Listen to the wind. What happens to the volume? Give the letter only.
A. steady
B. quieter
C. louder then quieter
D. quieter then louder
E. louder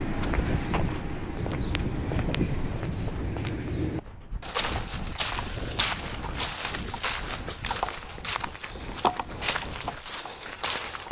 B.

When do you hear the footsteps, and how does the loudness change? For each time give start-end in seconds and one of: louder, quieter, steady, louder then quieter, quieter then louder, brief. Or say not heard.
0.0-11.0 steady.